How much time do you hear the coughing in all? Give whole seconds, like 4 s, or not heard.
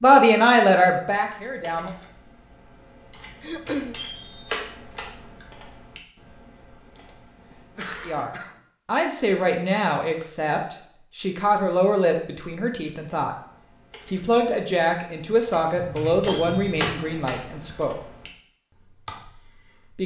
3 s.